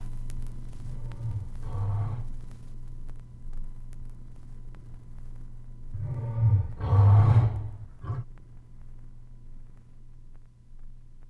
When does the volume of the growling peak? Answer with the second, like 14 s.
7 s.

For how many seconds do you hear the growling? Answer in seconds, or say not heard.
4 s.